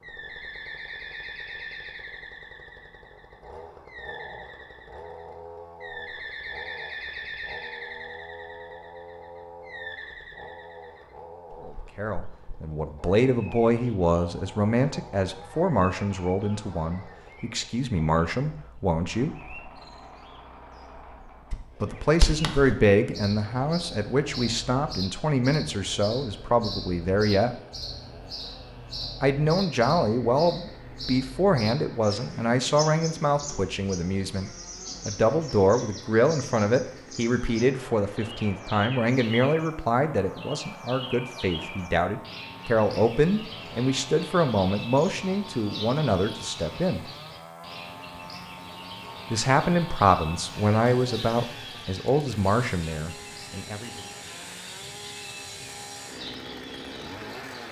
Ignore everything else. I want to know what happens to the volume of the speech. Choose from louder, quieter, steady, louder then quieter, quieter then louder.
steady.